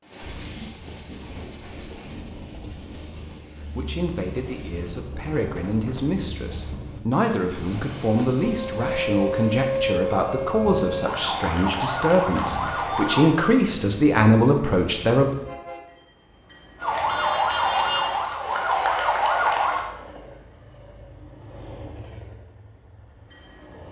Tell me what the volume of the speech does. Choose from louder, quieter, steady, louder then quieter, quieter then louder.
louder.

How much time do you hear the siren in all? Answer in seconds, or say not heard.
8 s.